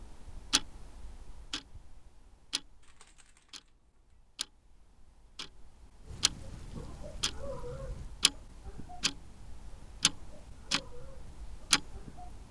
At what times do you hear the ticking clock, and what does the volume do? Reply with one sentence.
You can hear the ticking clock from 0.0 to 12.4 s, getting quieter then louder.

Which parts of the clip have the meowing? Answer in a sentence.
The meowing can be heard from 2.8 to 4.2 s.